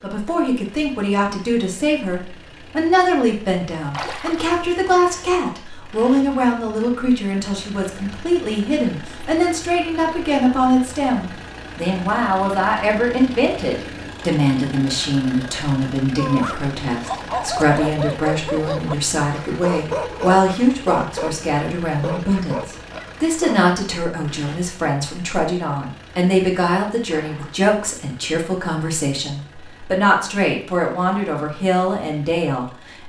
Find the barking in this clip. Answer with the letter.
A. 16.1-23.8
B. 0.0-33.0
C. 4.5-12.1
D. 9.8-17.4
A.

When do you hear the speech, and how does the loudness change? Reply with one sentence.
You can hear the speech from 0.0 to 33.0 s, at a steady volume.